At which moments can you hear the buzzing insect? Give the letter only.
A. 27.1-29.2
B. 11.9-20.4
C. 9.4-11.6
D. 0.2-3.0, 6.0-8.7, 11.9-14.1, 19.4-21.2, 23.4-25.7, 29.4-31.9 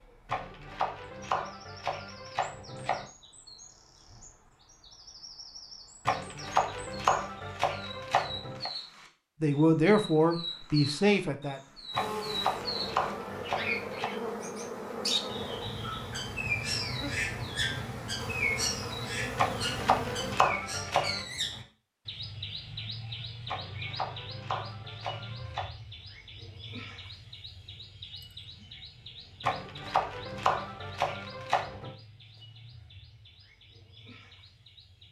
B.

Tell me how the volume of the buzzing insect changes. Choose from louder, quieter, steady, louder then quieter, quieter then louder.
steady.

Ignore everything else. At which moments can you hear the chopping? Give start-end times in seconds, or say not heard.
0.2-3.0, 6.0-8.7, 11.9-14.1, 19.4-21.2, 23.4-25.7, 29.4-31.9.